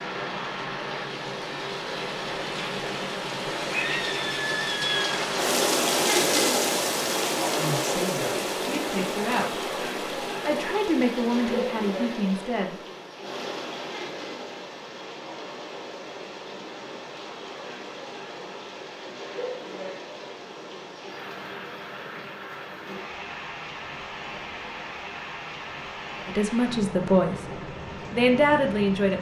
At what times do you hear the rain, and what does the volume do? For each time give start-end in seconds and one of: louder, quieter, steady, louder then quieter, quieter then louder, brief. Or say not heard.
0.0-29.1 quieter.